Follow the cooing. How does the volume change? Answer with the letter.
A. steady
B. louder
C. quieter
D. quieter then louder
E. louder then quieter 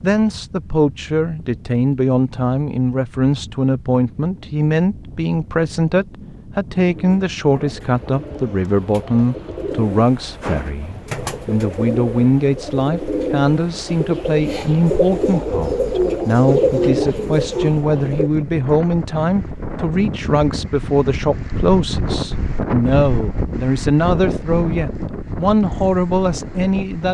B.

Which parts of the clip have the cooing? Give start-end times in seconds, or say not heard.
6.8-18.3.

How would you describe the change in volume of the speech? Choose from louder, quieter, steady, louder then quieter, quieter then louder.
steady.